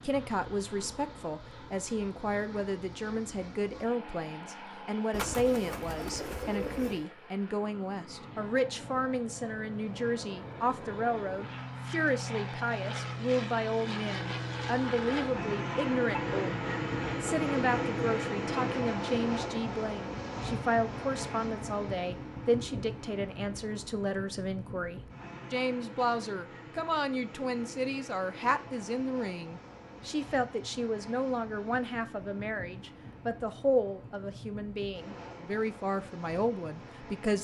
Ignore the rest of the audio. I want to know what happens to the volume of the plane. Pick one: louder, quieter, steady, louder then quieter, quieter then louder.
louder then quieter.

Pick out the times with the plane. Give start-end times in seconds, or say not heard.
0.0-37.3.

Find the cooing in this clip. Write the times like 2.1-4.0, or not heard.
5.1-7.0.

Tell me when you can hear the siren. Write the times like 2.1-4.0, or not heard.
not heard.